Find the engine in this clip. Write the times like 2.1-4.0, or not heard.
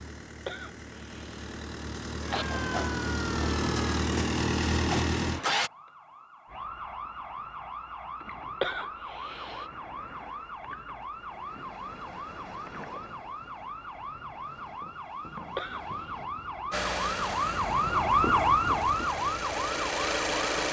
0.0-5.7, 16.7-20.6.